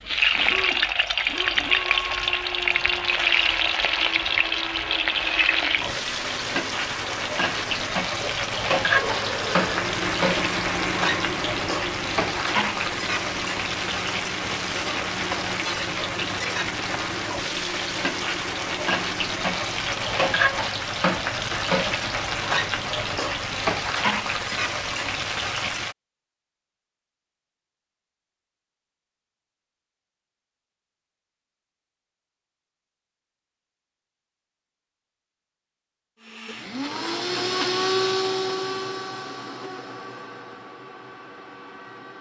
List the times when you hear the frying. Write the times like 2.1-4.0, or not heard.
0.0-25.9.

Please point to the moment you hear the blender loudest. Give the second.
38 s.